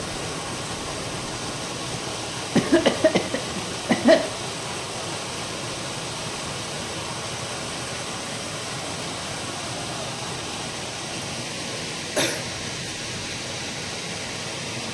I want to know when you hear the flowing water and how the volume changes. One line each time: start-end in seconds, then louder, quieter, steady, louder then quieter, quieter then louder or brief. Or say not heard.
0.0-14.8 steady.